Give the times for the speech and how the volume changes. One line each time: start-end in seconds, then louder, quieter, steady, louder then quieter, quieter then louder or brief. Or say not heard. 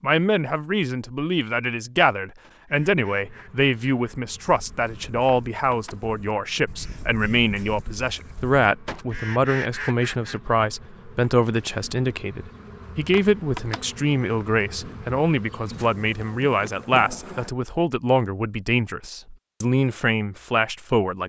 0.0-21.2 steady.